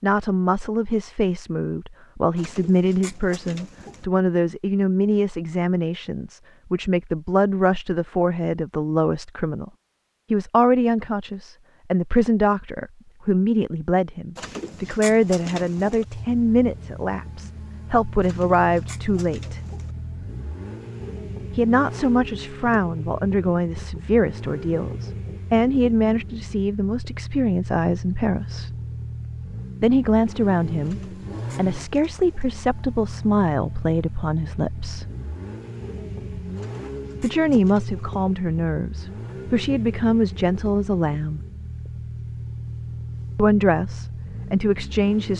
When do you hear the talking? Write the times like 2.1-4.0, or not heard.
0.0-9.7, 10.3-19.6, 21.6-28.7, 29.8-35.0, 37.2-41.4, 43.4-45.3.